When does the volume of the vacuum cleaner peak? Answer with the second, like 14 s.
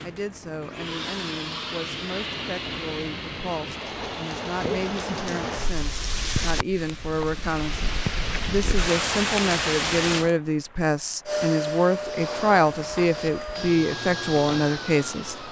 12 s.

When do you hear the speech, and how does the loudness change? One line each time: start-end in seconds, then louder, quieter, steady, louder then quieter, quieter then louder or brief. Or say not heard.
0.0-15.3 louder.